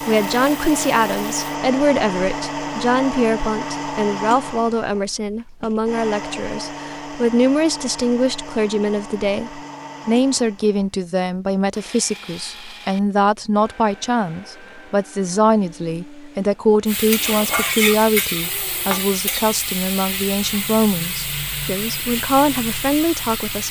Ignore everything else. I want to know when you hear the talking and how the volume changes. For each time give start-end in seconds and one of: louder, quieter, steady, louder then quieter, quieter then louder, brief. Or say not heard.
0.1-23.6 steady.